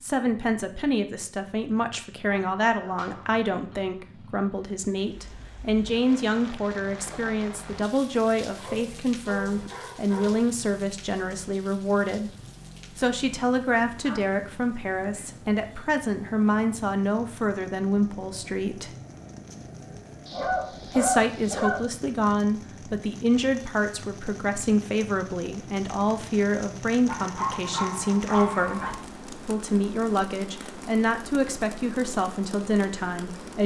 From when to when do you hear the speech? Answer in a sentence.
You can hear the speech from 0.0 to 12.3 s, from 12.9 to 18.9 s and from 20.9 to 33.6 s.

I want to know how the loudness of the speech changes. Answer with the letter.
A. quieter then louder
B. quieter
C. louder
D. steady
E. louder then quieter
D.